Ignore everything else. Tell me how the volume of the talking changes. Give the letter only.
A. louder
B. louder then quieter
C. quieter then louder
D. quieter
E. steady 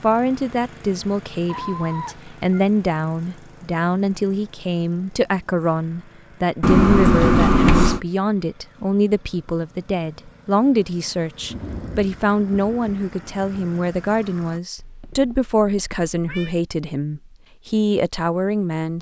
E.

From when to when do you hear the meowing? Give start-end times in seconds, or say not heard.
1.4-2.6, 6.6-8.0, 14.8-16.6.